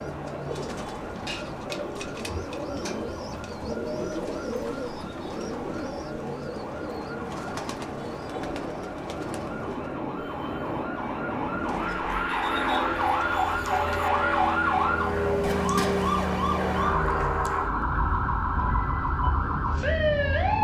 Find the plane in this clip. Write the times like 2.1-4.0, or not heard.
0.0-20.6.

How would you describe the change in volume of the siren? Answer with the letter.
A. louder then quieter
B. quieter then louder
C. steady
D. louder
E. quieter
D.